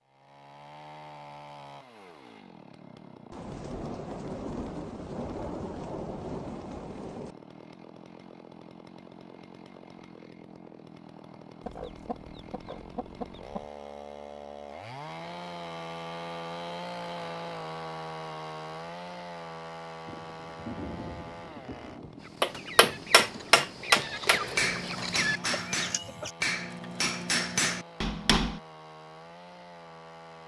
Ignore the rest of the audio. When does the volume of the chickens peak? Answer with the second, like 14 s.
25 s.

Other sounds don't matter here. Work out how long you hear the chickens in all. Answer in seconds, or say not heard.
6 s.